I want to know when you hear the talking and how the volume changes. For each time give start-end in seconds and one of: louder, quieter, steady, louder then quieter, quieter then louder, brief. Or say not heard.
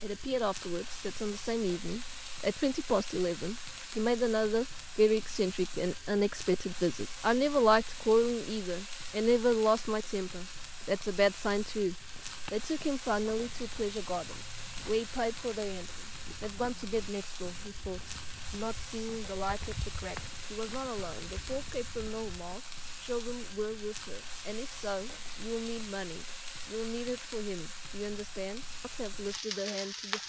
0.0-30.2 quieter.